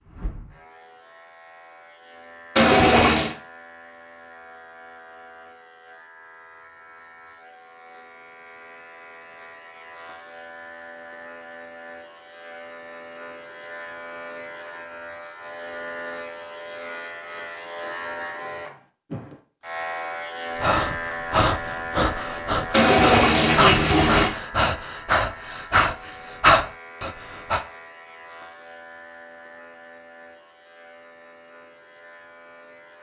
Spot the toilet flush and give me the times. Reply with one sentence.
You can hear the toilet flush from 2.5 to 3.4 s and from 22.7 to 24.4 s.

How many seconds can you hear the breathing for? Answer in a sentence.
The breathing can be heard for 7 seconds in total.